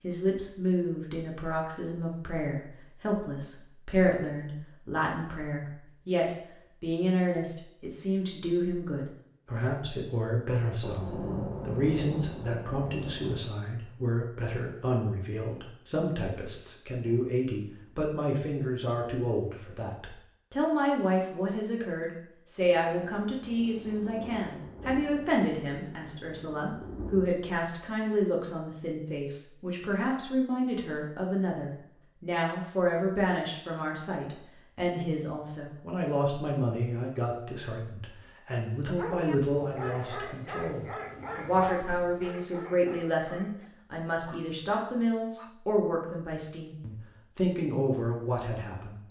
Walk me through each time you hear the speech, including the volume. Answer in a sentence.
The speech can be heard from 0.0 to 49.0 s, at a steady volume.